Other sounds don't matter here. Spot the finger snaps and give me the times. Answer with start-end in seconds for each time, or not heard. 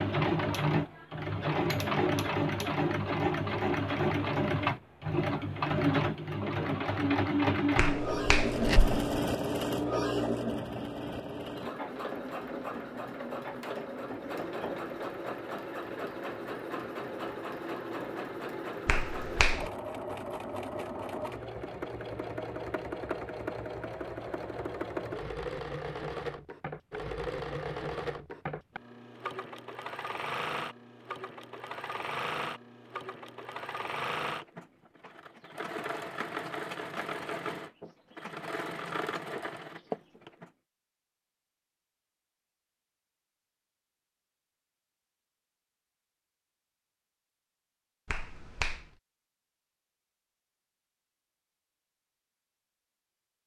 7.8-8.9, 18.9-19.7, 48.0-48.9.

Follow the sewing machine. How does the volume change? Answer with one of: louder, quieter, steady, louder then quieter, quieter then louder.
quieter.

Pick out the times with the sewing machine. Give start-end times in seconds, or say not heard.
0.0-40.5.